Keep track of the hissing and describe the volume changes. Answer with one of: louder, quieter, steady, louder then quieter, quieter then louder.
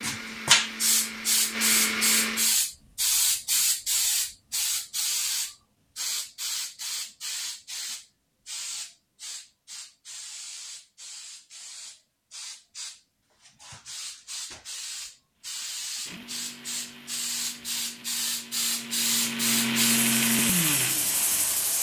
quieter then louder.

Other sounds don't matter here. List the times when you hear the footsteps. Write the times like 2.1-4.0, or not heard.
not heard.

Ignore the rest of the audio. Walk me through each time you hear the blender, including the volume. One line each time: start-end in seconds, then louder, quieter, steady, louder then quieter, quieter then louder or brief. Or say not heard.
0.0-2.5 brief
15.4-21.7 louder.